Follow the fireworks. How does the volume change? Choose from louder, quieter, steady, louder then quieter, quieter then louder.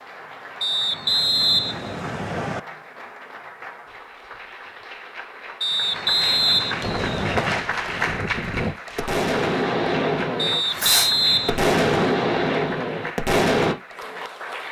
louder.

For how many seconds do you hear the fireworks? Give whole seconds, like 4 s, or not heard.
7 s.